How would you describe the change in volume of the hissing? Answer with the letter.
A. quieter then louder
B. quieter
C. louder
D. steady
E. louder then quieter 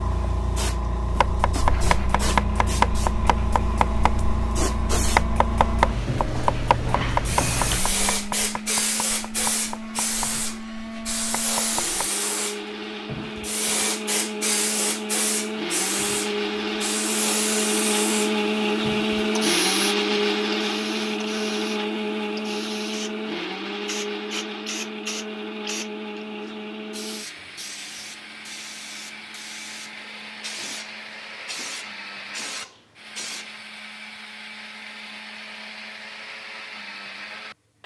B.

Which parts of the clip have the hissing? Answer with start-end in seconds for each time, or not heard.
0.0-33.5.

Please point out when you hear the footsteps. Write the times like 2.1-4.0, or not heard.
not heard.